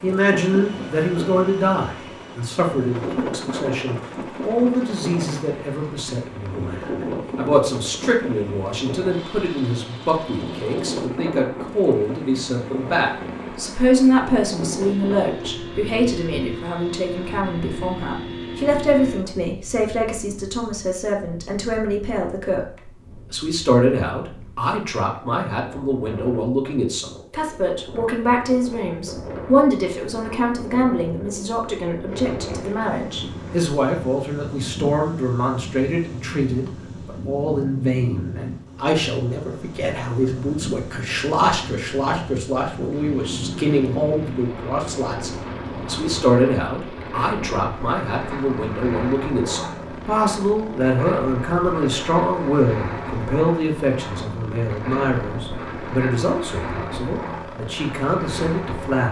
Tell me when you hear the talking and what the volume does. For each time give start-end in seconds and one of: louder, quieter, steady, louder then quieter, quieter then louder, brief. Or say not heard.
0.0-59.0 steady.